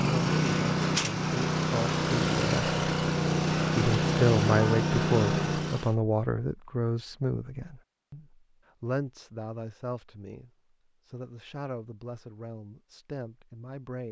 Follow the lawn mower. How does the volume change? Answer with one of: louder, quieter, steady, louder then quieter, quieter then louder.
steady.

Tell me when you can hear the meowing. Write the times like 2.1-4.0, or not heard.
not heard.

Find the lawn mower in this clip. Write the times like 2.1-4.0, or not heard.
0.0-6.0.